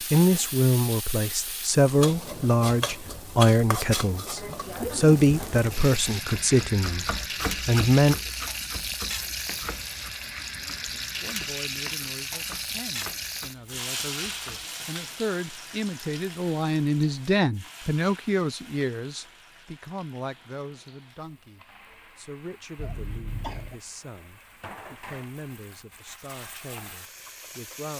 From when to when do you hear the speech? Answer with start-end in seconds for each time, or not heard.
0.1-7.0, 7.7-8.2, 11.2-27.9.